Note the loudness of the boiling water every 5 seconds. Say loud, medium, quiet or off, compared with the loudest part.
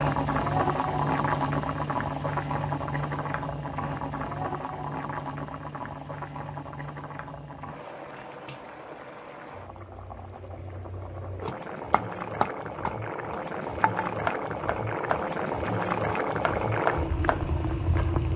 loud, medium, medium, loud.